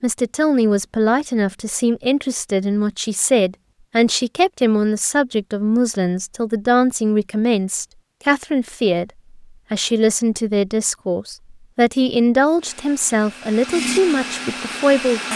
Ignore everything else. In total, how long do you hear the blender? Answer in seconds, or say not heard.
3 s.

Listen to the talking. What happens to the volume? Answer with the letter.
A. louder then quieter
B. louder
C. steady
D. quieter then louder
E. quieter
C.